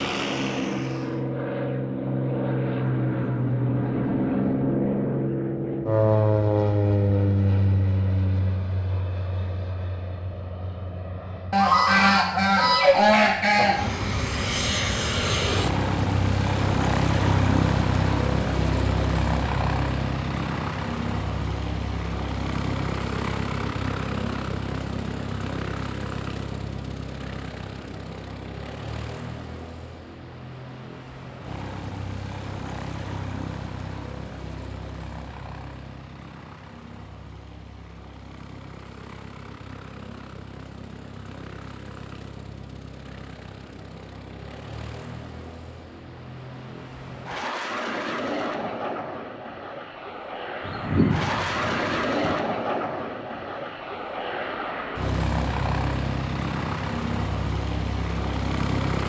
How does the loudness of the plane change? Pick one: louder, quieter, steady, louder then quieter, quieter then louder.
quieter then louder.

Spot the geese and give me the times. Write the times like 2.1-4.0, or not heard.
11.5-13.8, 50.6-52.3.